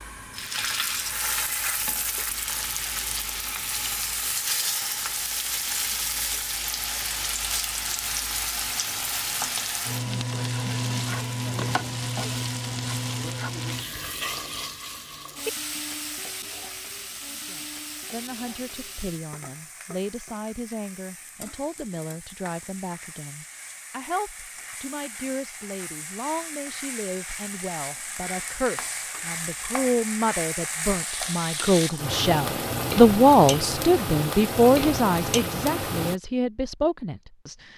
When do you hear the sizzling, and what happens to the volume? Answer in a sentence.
The sizzling can be heard from 0.0 to 36.2 s, getting quieter then louder.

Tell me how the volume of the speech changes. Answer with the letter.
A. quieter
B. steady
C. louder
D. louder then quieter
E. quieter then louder
C.